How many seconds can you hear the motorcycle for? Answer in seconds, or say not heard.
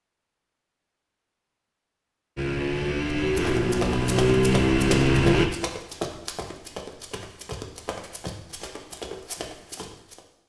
3 s.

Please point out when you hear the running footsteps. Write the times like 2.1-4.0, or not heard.
3.2-10.2.